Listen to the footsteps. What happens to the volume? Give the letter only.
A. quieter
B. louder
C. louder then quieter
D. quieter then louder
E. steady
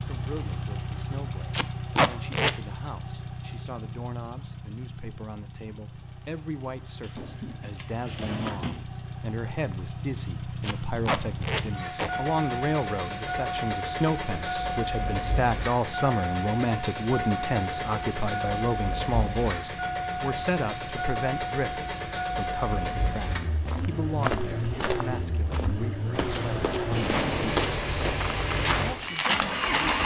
D.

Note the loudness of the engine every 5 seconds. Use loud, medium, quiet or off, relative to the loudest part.
medium, medium, loud, loud, loud, loud.